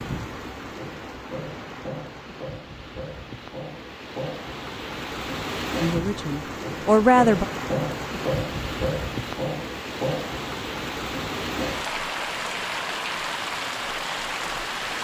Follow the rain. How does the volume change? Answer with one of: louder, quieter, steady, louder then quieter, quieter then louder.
louder.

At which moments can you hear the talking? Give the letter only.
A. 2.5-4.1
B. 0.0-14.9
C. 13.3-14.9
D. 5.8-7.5
D.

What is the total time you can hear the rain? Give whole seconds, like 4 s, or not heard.
15 s.